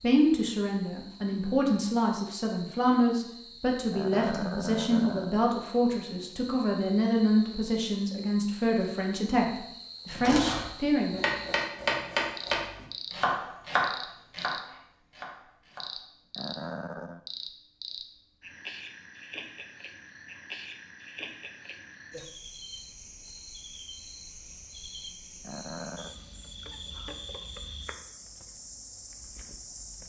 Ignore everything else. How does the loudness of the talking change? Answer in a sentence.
The volume of the talking stays about the same.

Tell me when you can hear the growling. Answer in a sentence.
You can hear the growling from 3.9 to 5.5 s, from 16.4 to 17.2 s and from 25.4 to 26.1 s.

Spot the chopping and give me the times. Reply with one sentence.
You can hear the chopping from 10.1 to 15.9 s.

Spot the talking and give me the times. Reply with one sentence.
You can hear the talking from 0.0 to 11.3 s.